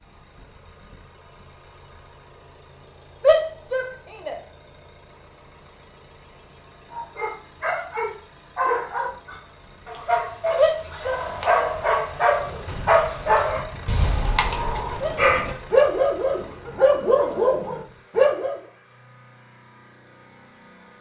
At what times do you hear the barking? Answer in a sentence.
The barking can be heard from 6.9 to 18.6 s.